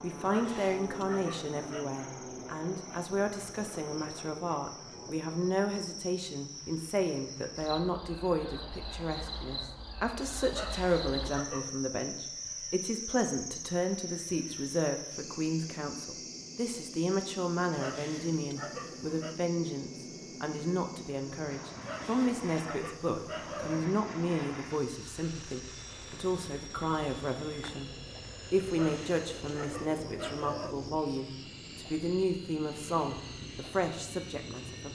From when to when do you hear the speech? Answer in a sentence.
The speech can be heard from 0.0 to 27.9 s and from 28.5 to 34.9 s.